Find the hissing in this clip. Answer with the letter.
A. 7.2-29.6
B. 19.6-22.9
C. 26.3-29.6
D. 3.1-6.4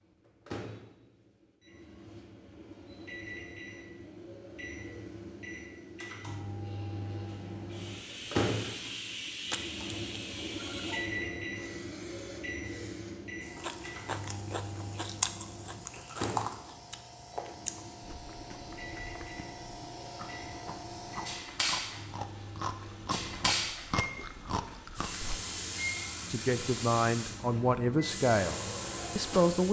A.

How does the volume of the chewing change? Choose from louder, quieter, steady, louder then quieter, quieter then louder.
quieter then louder.